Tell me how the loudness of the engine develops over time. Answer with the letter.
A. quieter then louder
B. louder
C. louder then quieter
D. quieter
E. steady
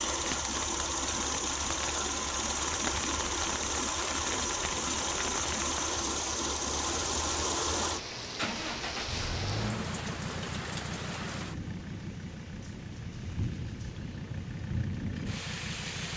D.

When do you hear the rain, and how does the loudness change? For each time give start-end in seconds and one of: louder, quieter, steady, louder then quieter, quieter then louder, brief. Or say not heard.
0.0-16.1 steady.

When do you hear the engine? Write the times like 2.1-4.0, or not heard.
0.0-16.1.